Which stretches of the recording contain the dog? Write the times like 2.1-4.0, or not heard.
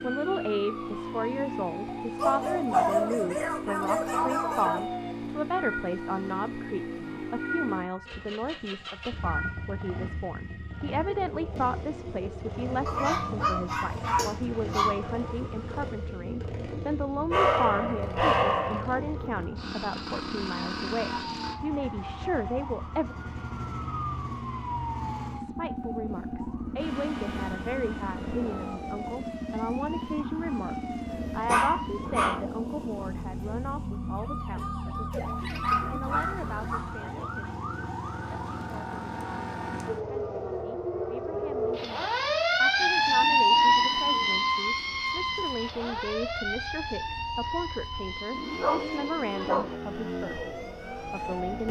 2.1-4.8, 12.8-15.0, 17.3-18.8, 31.4-32.4, 35.1-36.8, 48.5-49.8.